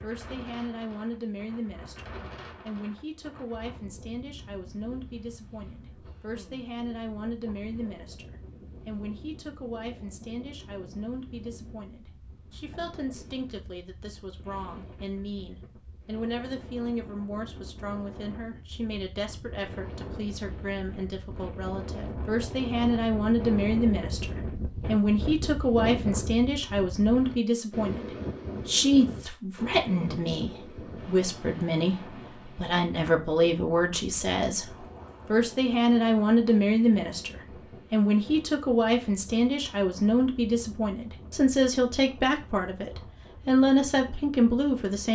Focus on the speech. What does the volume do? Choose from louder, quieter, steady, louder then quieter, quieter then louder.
louder.